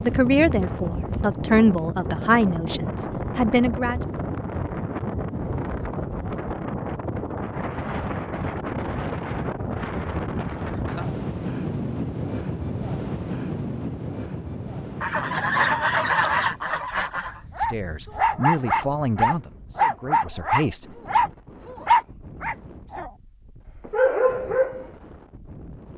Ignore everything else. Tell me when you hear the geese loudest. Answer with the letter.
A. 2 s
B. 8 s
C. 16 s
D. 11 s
C.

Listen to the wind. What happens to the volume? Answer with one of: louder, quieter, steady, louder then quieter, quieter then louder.
quieter.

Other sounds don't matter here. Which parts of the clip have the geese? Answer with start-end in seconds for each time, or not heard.
15.0-17.4.